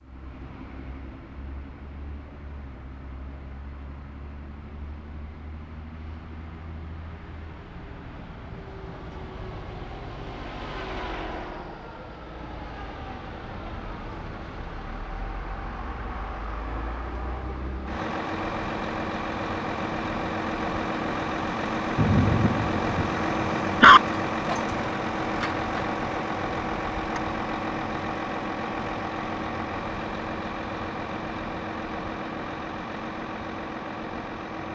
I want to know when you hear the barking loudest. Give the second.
24 s.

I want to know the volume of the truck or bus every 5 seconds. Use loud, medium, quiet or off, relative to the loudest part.
quiet, quiet, medium, medium, loud, loud, medium.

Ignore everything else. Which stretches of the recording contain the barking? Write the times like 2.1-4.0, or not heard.
21.9-24.0.